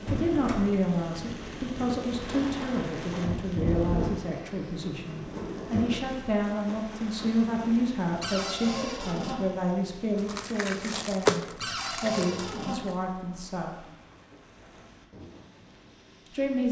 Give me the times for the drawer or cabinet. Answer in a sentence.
You can hear the drawer or cabinet from 0.1 to 0.8 s, from 8.2 to 9.4 s and from 11.6 to 12.8 s.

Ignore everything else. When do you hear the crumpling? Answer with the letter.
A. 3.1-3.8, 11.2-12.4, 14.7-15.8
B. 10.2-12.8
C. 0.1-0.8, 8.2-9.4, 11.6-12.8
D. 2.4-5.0
B.